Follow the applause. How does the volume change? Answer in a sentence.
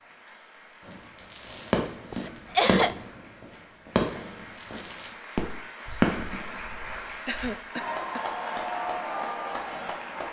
The loudness of the applause goes up.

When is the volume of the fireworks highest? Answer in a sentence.
The loudest moment of the fireworks is at 6 seconds.